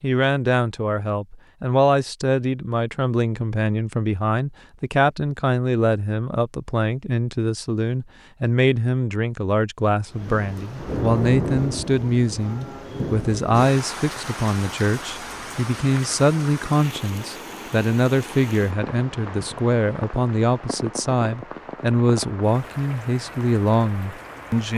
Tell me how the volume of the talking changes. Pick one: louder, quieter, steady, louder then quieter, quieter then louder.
steady.